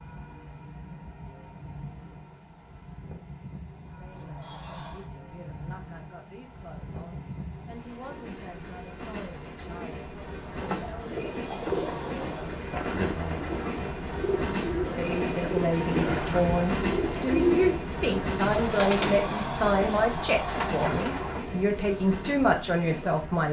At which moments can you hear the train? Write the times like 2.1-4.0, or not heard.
0.0-23.4.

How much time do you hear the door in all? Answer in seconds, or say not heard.
5 s.